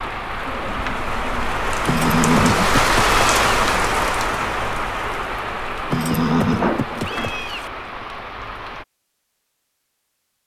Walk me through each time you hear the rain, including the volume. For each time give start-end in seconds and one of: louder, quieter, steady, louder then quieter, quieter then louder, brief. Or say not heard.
0.0-8.8 louder then quieter.